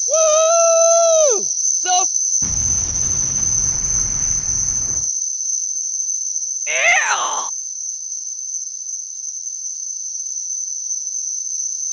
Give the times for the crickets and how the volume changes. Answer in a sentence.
You can hear the crickets from 0.0 to 11.8 s, getting quieter.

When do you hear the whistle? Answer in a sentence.
You can't hear the whistle here.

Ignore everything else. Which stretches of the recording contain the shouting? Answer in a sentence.
You can hear the shouting from 0.1 to 2.0 s and from 6.7 to 7.5 s.